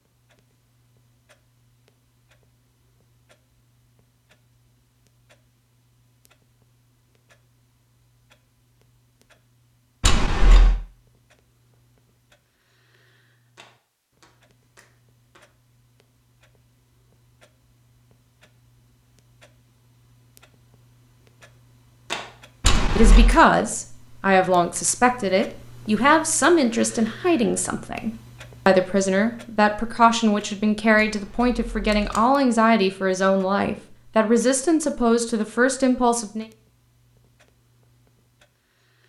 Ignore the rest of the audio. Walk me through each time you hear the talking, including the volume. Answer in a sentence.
You can hear the talking from 22.9 to 36.5 s, at a steady volume.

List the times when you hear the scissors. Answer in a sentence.
You can hear the scissors from 10.0 to 10.8 s, from 22.6 to 23.4 s and from 30.9 to 32.2 s.